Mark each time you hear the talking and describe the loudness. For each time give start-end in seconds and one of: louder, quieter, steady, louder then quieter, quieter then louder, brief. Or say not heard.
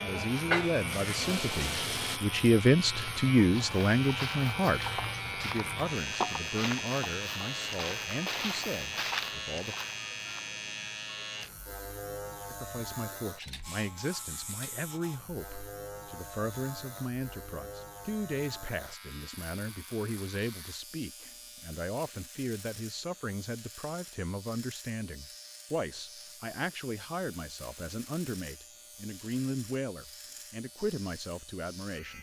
0.0-9.8 louder then quieter
12.5-32.1 steady.